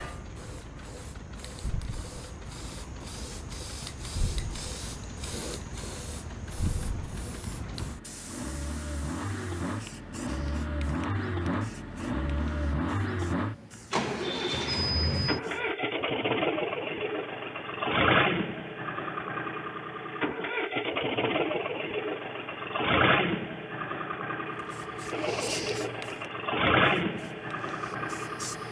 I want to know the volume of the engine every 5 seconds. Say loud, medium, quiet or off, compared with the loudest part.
quiet, medium, loud, loud, loud, loud.